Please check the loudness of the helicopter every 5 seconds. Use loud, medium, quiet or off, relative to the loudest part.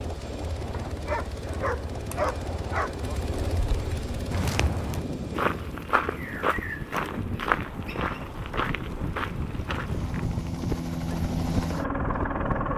medium, quiet, loud.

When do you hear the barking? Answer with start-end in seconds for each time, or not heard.
0.8-3.2.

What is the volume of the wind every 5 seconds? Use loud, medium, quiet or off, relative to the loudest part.
medium, loud, loud.